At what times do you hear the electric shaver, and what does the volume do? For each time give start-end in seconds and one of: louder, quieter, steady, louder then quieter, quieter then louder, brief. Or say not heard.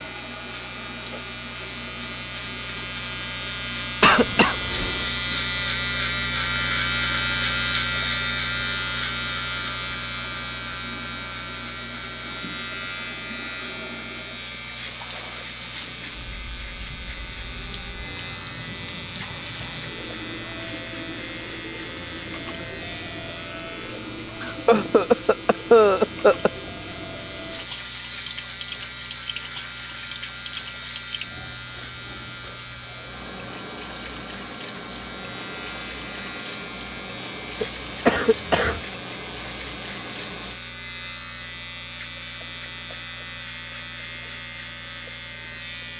0.0-45.9 quieter.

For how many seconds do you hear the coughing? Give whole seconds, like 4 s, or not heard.
4 s.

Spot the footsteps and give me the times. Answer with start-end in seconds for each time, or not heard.
not heard.